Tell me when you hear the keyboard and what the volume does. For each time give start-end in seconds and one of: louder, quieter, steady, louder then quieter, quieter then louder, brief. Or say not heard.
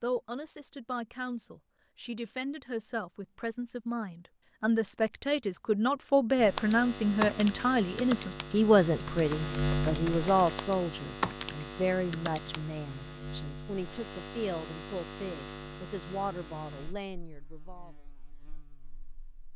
6.5-12.6 quieter then louder.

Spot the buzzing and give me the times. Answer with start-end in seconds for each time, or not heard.
6.3-19.5.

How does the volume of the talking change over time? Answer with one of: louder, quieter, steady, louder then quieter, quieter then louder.
louder then quieter.